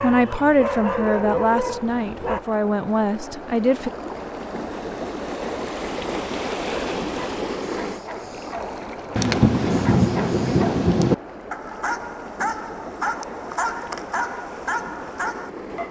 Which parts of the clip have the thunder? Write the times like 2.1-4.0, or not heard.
9.2-11.2.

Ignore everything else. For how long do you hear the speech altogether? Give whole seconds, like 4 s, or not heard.
4 s.